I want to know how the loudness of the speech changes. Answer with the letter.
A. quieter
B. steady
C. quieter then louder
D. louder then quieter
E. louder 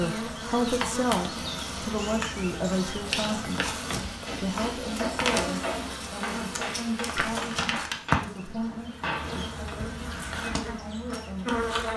A.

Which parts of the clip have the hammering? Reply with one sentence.
You can hear the hammering from 4.2 to 9.7 s.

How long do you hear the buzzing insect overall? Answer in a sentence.
You can hear the buzzing insect for 12 seconds altogether.